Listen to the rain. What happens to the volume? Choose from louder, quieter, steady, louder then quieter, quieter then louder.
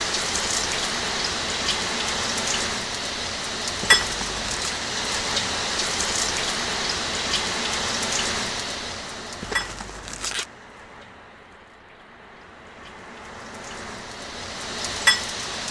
quieter then louder.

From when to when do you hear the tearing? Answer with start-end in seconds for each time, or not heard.
3.8-4.8, 9.4-10.5.